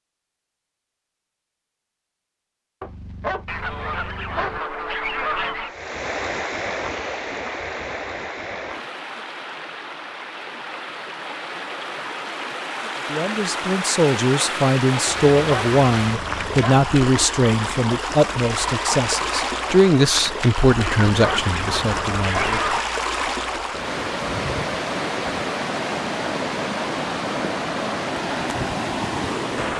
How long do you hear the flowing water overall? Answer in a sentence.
You can hear the flowing water for 24 seconds altogether.